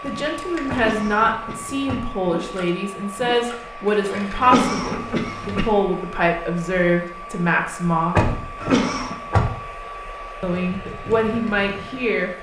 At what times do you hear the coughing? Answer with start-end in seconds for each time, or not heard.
0.8-2.0, 4.4-5.7, 8.6-9.2.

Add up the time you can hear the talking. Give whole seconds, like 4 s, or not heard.
10 s.